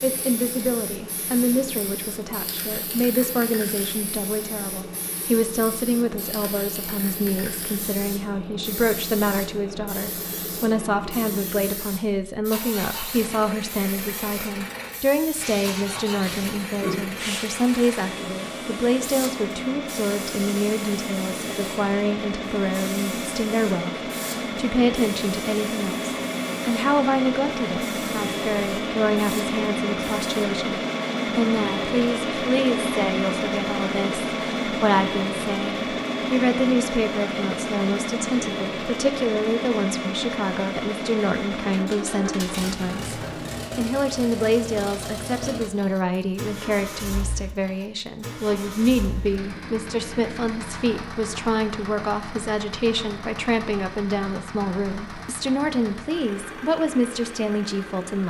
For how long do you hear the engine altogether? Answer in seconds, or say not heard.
58 s.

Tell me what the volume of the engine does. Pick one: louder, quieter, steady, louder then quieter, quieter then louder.
louder then quieter.